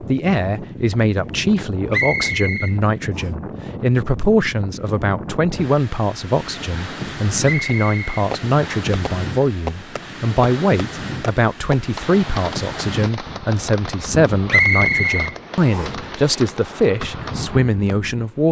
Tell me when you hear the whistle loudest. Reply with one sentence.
The loudest moment of the whistle is at 15 seconds.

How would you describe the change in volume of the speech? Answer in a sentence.
The volume of the speech stays about the same.